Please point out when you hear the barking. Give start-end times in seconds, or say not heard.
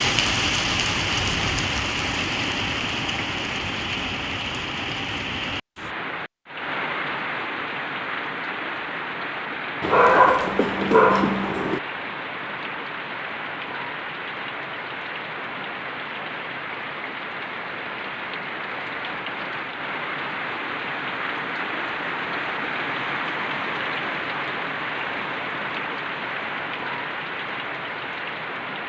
9.8-11.8.